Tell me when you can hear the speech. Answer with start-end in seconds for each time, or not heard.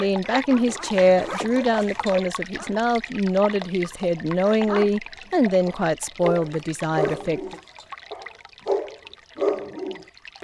0.0-7.5.